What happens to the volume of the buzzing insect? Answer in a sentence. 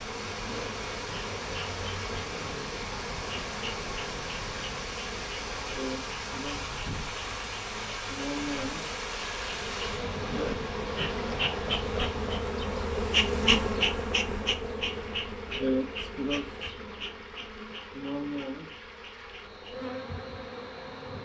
The volume of the buzzing insect goes up, then down.